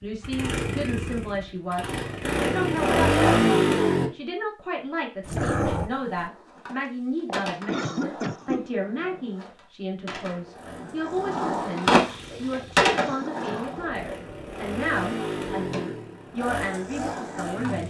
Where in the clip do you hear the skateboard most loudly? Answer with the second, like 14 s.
12 s.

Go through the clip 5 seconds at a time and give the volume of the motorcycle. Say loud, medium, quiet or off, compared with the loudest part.
loud, off, quiet, medium.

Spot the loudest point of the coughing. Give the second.
8 s.